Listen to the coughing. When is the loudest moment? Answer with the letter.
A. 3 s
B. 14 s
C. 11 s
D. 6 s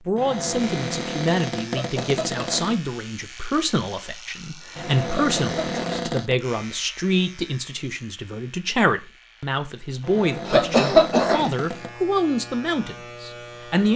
C.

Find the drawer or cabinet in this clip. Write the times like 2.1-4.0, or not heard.
0.1-2.8, 4.8-6.3, 10.0-11.9.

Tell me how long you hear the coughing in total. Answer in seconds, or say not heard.
3 s.